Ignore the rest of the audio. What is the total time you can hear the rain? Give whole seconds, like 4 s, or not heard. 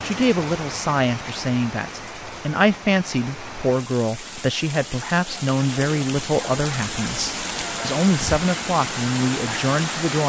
10 s.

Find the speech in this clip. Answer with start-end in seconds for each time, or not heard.
0.0-10.2.